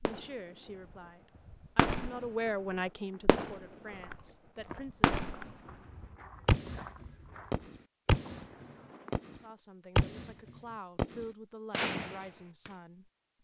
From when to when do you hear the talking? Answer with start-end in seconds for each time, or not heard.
0.0-5.2, 9.3-13.1.